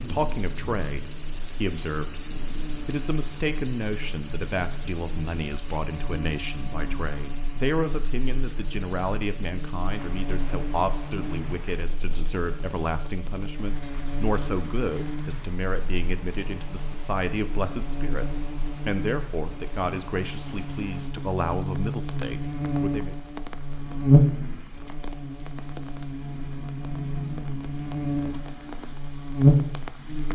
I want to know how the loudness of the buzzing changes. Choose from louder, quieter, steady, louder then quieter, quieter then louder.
louder.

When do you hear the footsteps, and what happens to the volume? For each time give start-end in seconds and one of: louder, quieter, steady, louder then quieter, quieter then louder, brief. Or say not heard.
not heard.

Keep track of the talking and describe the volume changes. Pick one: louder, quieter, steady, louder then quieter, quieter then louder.
steady.